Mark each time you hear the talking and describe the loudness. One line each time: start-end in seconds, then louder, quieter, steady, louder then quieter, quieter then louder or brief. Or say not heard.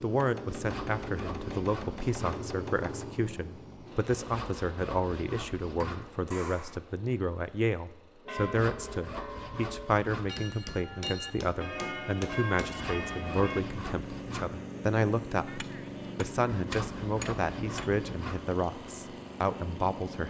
0.0-20.2 steady.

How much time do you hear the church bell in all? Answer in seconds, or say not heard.
5 s.